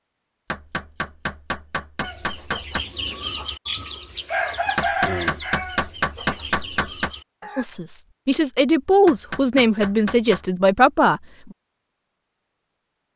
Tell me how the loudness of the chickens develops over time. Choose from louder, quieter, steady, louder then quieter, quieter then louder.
louder then quieter.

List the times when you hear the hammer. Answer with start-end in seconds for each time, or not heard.
0.5-2.9, 4.8-7.1, 9.1-10.4.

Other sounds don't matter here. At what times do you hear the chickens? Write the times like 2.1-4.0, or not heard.
2.0-7.7.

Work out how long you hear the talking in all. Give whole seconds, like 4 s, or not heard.
4 s.